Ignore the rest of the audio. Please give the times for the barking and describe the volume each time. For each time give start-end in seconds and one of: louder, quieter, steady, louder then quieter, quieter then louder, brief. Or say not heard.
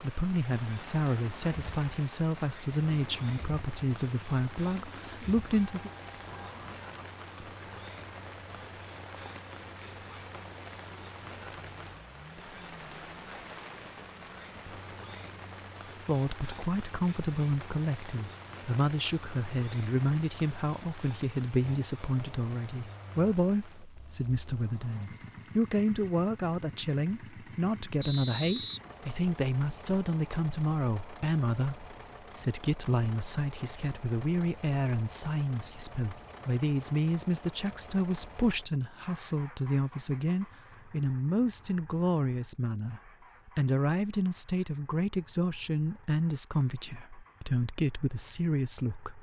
not heard.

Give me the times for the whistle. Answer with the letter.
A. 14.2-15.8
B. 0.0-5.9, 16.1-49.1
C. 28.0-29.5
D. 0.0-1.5
C.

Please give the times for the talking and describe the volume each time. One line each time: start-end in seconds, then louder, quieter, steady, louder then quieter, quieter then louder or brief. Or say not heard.
0.0-5.9 steady
16.1-49.1 steady.